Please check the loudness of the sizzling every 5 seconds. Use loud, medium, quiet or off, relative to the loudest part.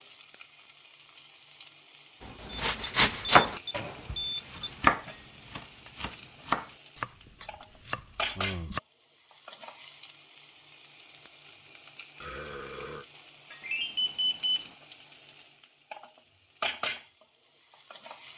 medium, loud, medium, loud.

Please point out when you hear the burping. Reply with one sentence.
The burping can be heard from 12.2 to 13.1 s.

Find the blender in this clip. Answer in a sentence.
You can't hear the blender here.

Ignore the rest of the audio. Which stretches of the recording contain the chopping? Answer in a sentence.
The chopping can be heard from 2.5 to 8.8 s.